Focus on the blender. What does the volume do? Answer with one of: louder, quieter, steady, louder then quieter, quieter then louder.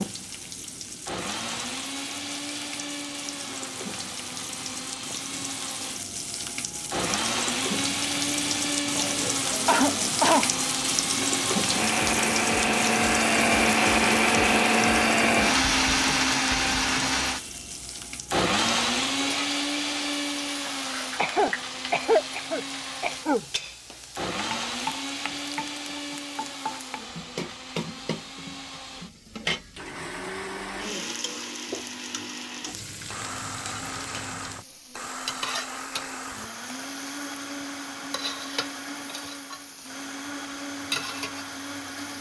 louder then quieter.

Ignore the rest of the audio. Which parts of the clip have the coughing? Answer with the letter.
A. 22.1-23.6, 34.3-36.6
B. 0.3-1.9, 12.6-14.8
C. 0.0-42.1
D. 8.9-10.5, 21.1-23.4
D.